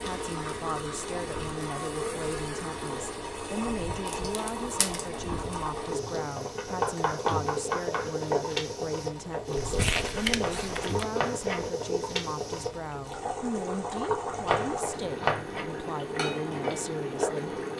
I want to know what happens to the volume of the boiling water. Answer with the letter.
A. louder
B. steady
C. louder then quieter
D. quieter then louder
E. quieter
B.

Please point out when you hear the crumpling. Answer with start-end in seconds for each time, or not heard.
4.0-5.0, 9.6-11.1.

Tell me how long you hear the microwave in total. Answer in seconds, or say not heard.
not heard.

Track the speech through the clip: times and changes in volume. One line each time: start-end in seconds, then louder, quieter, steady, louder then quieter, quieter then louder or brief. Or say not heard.
0.0-17.6 steady.